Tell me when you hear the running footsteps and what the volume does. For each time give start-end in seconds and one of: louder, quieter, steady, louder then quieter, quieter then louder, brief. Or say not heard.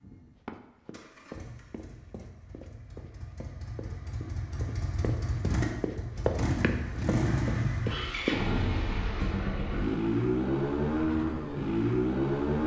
0.5-8.4 louder.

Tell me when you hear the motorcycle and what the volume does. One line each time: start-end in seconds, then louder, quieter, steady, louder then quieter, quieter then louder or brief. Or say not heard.
0.0-12.6 louder.